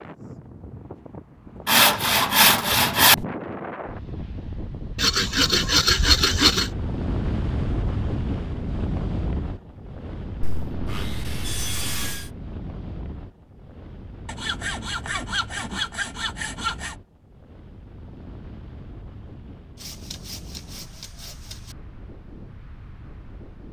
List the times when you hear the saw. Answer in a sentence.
The saw can be heard from 1.6 to 3.2 s, from 5.0 to 6.7 s, from 10.4 to 12.3 s, from 14.2 to 16.9 s and from 19.8 to 21.8 s.